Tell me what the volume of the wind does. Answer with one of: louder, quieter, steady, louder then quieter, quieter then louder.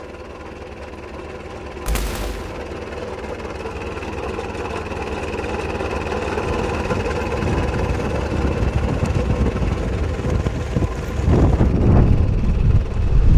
louder.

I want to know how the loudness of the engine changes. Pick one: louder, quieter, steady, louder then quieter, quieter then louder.
louder then quieter.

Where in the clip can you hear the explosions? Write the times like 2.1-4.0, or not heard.
1.9-2.6.